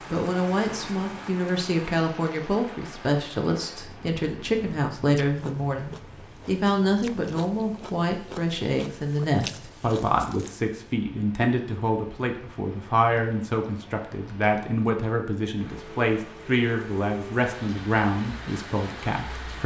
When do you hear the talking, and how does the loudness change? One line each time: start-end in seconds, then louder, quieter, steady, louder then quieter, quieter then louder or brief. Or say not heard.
0.1-19.6 steady.